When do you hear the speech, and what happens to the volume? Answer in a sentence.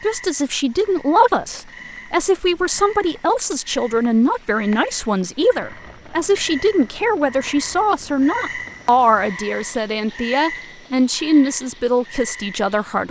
The speech can be heard from 0.0 to 13.0 s, at a steady volume.